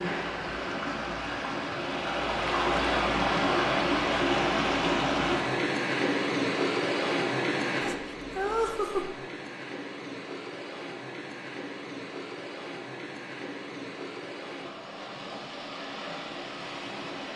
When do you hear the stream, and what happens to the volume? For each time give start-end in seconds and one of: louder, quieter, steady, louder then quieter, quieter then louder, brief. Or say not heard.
0.0-17.3 quieter.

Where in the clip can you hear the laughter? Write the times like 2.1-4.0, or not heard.
7.8-9.2.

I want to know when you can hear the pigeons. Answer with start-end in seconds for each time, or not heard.
not heard.